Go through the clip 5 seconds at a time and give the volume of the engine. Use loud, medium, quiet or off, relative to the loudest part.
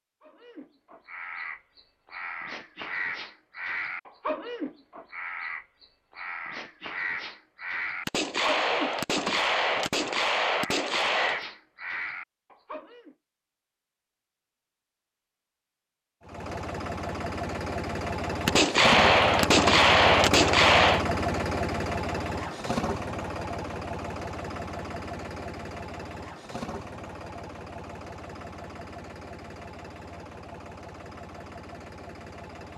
off, off, off, loud, loud, medium, quiet.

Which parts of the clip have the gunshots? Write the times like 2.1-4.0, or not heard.
8.1-11.4, 18.4-21.1.